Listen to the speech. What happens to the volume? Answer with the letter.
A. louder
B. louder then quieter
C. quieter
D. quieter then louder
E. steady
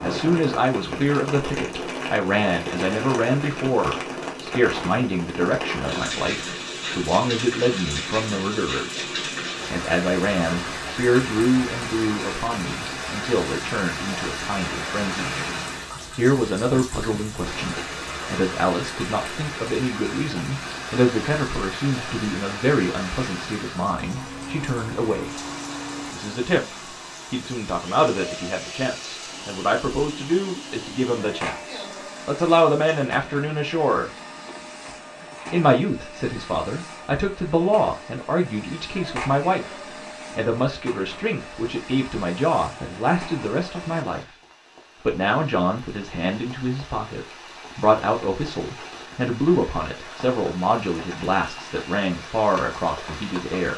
E.